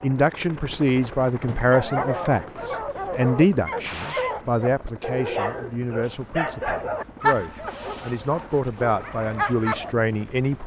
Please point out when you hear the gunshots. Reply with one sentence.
The gunshots can be heard from 3.8 to 4.3 s.